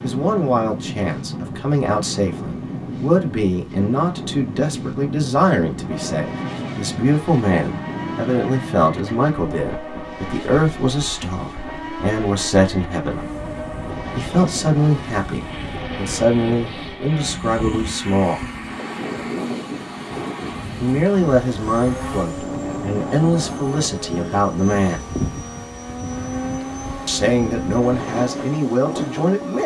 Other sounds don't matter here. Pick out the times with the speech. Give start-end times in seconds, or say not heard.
0.0-13.2, 14.2-18.4, 20.8-25.1, 27.1-29.6.